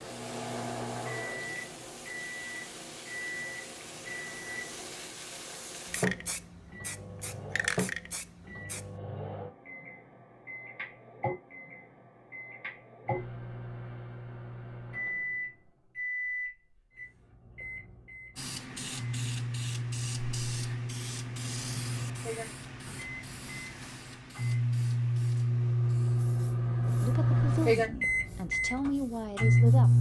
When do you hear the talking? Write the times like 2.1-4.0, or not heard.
27.0-29.9.